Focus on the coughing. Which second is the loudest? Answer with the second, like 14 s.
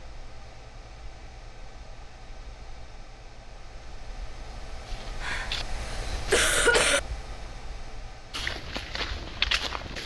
7 s.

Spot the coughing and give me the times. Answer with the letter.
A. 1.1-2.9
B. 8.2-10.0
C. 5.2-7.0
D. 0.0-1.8
C.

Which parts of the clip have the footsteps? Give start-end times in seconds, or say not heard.
4.8-6.8, 8.3-10.0.